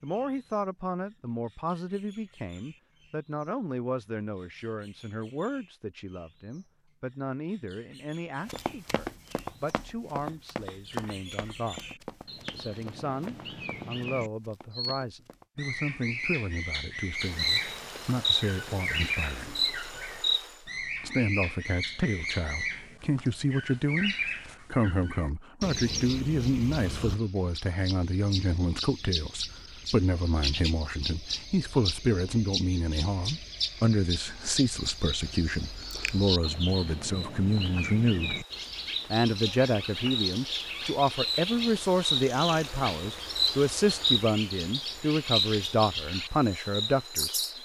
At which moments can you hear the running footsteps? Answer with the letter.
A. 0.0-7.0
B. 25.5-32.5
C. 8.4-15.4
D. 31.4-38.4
C.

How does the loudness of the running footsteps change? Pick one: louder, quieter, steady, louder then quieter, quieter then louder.
quieter.